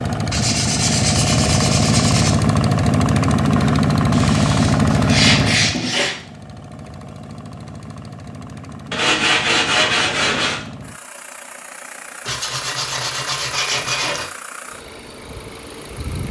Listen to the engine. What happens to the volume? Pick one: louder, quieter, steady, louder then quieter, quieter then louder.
quieter.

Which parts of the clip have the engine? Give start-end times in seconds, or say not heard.
0.0-16.2.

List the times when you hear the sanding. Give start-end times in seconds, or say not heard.
0.3-2.4, 4.1-6.2, 8.9-10.6, 12.2-14.2.